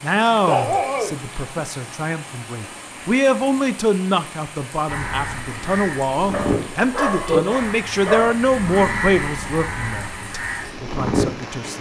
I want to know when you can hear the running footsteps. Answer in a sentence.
The running footsteps can't be heard in this clip.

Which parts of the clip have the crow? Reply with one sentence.
You can hear the crow from 4.8 to 11.4 s.